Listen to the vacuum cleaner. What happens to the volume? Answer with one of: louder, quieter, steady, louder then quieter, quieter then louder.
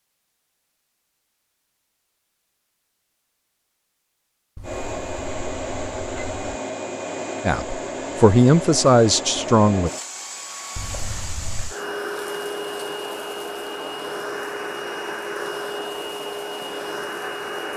steady.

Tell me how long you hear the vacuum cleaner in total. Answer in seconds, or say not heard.
13 s.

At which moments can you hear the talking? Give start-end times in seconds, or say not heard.
7.5-9.9.